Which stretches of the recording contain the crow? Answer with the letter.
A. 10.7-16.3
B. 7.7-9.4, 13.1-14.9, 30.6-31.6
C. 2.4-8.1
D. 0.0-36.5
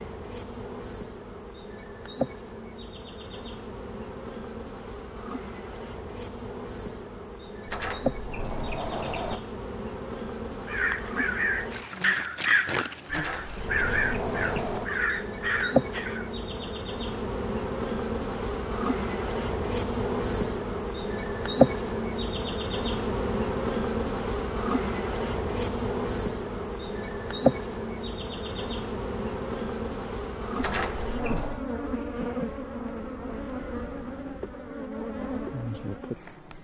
A.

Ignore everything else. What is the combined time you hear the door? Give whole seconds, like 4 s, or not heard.
5 s.